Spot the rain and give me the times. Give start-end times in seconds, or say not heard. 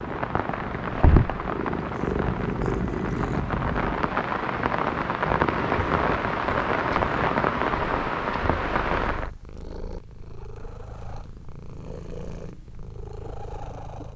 0.0-9.3.